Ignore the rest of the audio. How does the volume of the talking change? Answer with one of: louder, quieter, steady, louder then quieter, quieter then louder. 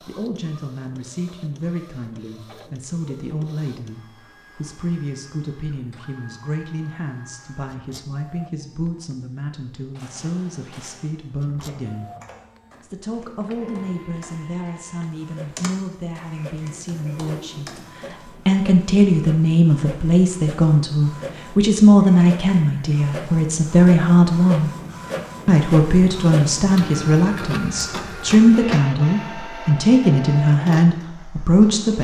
louder.